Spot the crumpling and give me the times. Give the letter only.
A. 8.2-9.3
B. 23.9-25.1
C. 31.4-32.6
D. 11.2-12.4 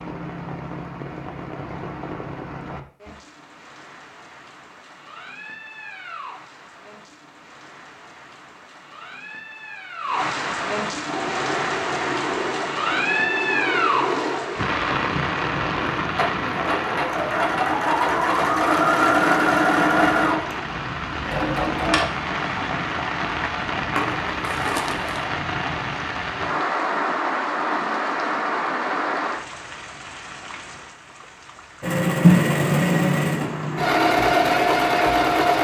B.